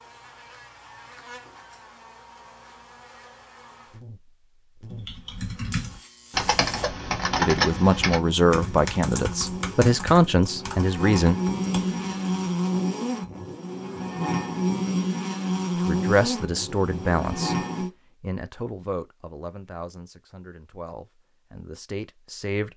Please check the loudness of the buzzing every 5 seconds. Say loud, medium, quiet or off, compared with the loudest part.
quiet, medium, loud, loud, off.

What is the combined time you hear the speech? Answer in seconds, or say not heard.
11 s.